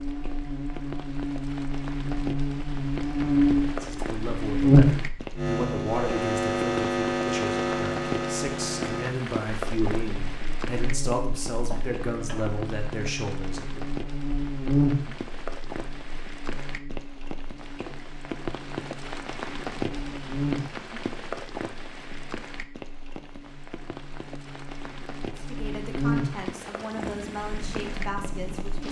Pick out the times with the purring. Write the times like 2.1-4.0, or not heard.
26.8-28.8.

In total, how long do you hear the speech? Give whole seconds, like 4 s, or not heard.
14 s.